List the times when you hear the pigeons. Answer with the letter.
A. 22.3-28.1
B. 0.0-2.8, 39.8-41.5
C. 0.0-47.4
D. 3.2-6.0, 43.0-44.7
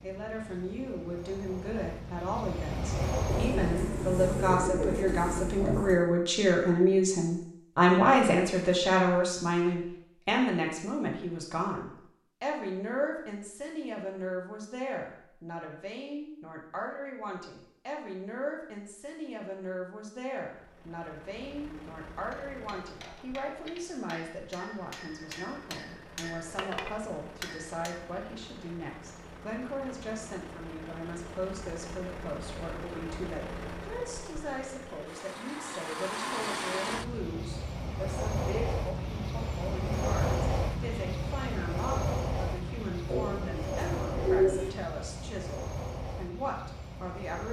D.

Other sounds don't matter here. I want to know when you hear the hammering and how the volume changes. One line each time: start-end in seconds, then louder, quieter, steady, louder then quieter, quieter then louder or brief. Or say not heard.
22.3-28.1 louder.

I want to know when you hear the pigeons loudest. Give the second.
44 s.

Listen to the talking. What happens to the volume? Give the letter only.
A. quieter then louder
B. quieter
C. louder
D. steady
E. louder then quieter
B.